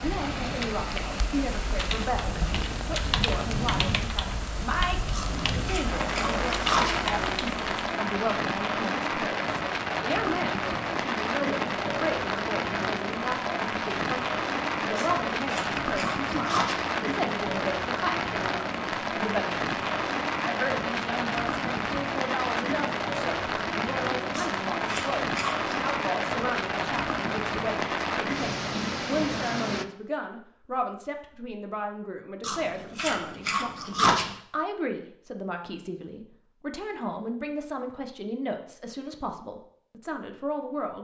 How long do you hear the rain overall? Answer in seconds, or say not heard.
30 s.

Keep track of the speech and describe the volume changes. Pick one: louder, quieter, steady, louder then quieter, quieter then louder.
steady.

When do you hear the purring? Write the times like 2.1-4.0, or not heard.
not heard.